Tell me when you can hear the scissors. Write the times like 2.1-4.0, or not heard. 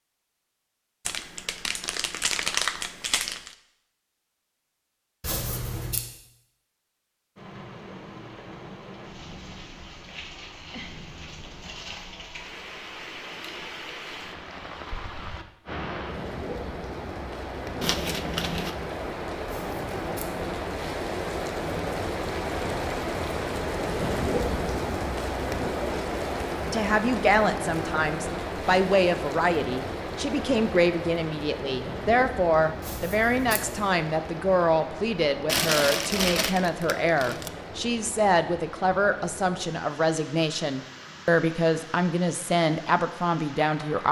5.2-6.0, 19.4-20.4, 32.8-33.9.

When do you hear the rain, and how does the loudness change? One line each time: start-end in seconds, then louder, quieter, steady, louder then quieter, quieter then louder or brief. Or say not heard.
7.3-44.0 louder then quieter.